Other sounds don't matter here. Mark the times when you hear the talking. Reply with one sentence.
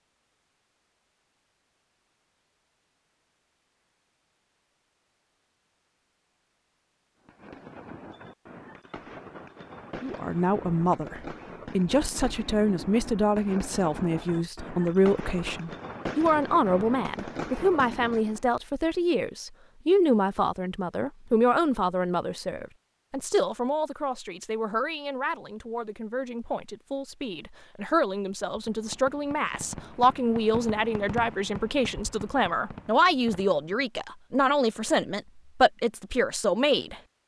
The talking can be heard from 10.0 to 37.0 s.